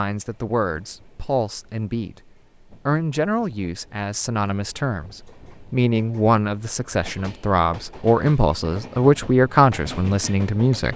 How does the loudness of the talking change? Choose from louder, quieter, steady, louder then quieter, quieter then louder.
louder.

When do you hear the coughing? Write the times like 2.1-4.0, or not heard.
not heard.